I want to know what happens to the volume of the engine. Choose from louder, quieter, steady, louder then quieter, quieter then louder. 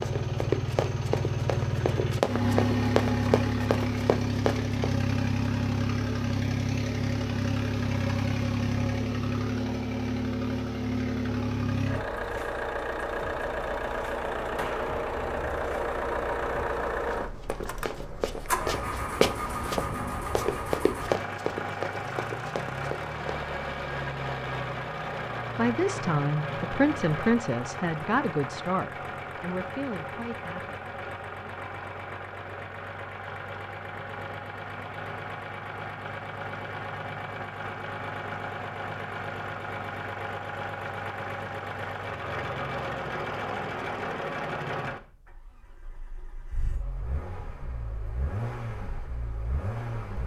quieter.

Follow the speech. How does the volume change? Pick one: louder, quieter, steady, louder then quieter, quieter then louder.
quieter.